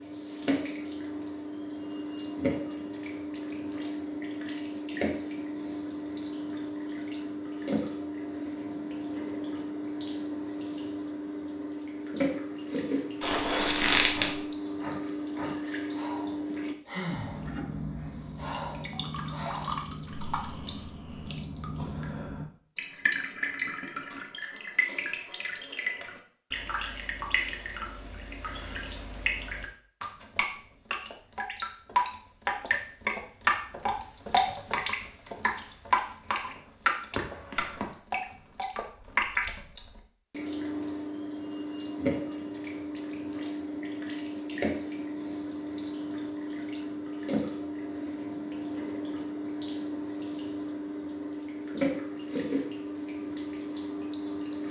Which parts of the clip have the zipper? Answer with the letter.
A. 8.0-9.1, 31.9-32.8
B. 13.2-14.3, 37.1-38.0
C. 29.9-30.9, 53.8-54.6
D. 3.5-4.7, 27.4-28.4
B.